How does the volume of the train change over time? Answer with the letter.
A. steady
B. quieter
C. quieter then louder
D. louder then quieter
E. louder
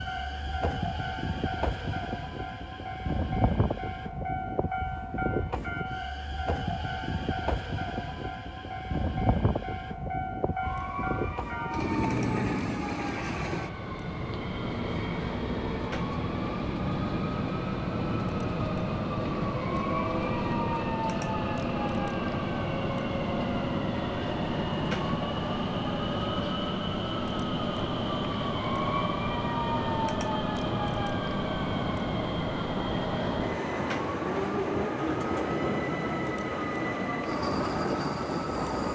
A.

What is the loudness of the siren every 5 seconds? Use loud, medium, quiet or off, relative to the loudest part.
off, off, loud, loud, loud, loud, loud, loud.